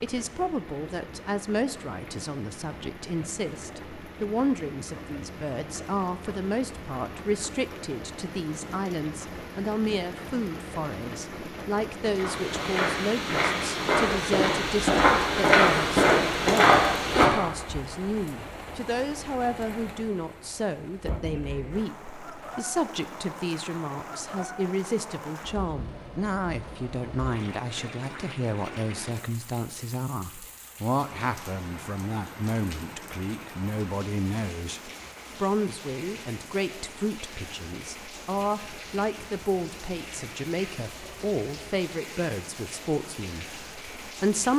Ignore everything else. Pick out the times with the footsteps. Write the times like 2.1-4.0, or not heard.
12.2-17.8.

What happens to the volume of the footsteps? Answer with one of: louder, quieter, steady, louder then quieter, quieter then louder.
louder.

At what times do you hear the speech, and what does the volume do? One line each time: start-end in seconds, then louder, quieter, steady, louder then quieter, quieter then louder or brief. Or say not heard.
0.0-44.5 steady.